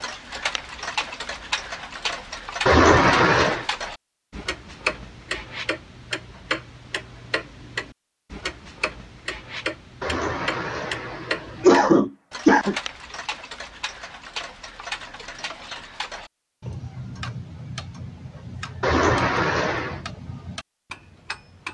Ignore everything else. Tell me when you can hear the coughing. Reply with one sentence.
You can hear the coughing from 2.6 to 3.6 s, from 10.0 to 12.8 s and from 18.8 to 20.0 s.